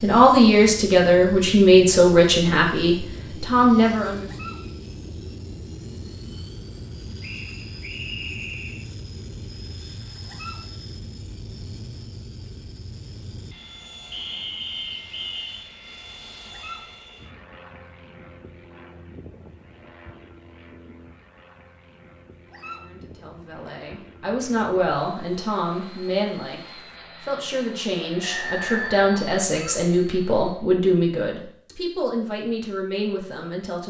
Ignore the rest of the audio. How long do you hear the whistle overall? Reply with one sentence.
The whistle can be heard for 4 seconds in total.